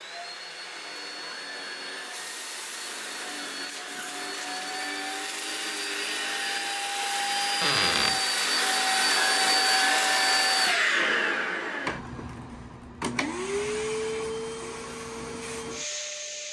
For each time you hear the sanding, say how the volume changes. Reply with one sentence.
You can't hear the sanding here.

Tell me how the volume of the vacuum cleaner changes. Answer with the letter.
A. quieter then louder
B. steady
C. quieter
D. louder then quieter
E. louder
D.